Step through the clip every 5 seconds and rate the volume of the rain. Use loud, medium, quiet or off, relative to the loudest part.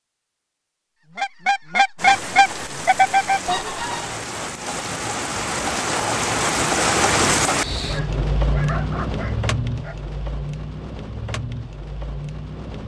medium, loud, medium.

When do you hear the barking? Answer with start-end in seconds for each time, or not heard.
7.8-9.9.